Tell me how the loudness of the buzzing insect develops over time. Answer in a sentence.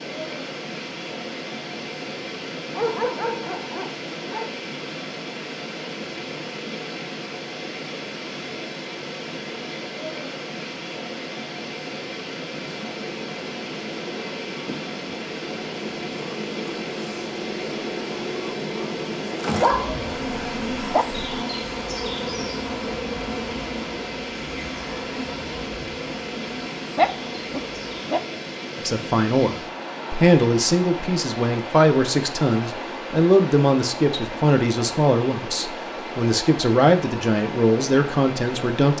The volume of the buzzing insect goes up, then down.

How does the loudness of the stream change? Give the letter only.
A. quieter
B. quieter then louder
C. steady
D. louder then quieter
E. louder
C.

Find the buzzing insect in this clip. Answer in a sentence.
You can hear the buzzing insect from 12.6 to 28.1 s.